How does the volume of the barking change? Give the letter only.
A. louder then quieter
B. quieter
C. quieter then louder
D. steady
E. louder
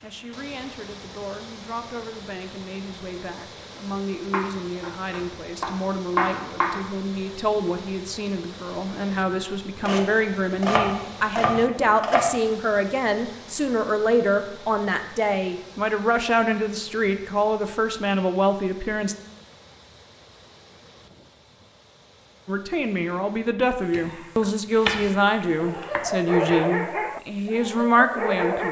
A.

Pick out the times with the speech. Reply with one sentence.
You can hear the speech from 0.0 to 19.1 s and from 22.4 to 28.6 s.